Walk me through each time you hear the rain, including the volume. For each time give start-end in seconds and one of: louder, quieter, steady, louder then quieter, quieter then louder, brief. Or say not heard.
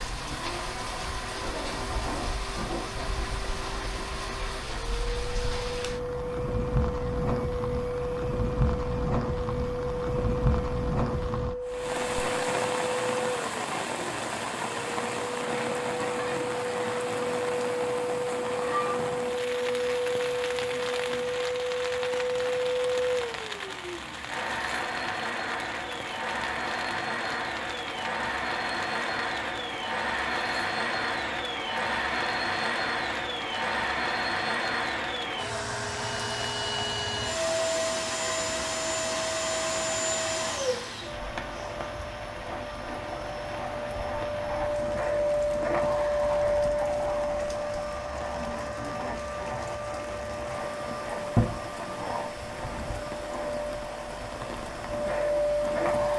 0.0-56.1 quieter.